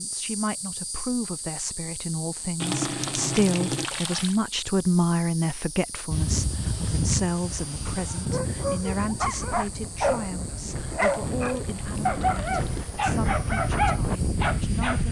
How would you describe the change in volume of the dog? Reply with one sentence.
The volume of the dog stays about the same.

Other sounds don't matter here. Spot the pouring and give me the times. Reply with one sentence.
You can hear the pouring from 2.6 to 4.4 s and from 11.0 to 12.9 s.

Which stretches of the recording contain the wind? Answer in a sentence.
The wind can be heard from 6.1 to 15.0 s.